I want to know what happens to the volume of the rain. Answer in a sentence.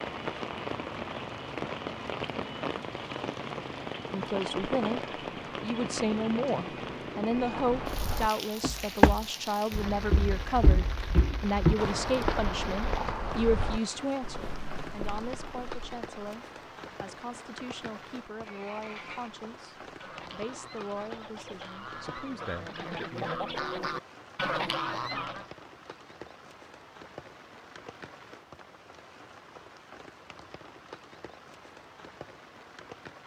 The volume of the rain goes down.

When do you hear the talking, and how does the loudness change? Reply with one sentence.
The talking can be heard from 4.1 to 23.4 s, getting quieter.